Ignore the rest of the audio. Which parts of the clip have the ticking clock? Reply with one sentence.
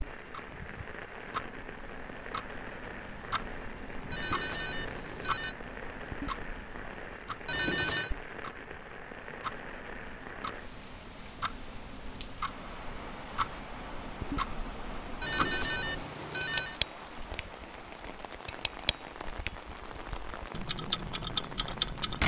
The ticking clock can be heard from 0.0 to 22.2 s.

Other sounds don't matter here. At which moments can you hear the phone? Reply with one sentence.
You can hear the phone from 4.1 to 5.5 s, from 7.5 to 8.2 s and from 15.2 to 16.8 s.